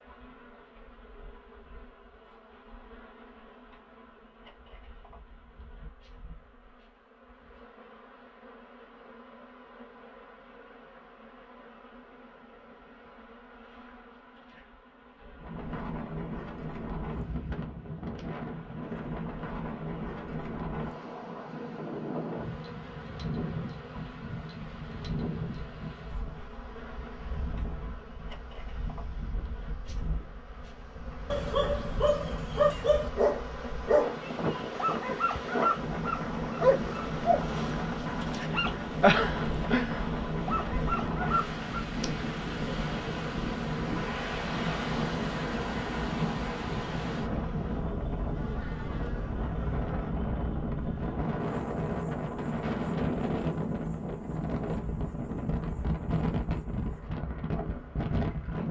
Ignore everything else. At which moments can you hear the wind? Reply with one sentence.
The wind can be heard from 15.4 to 58.6 s.